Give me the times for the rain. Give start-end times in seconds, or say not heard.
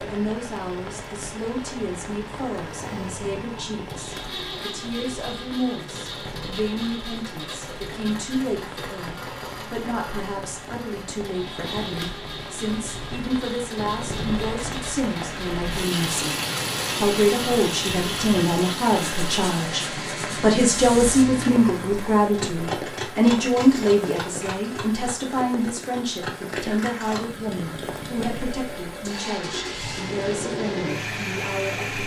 0.0-32.0.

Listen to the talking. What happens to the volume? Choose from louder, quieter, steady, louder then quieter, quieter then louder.
louder then quieter.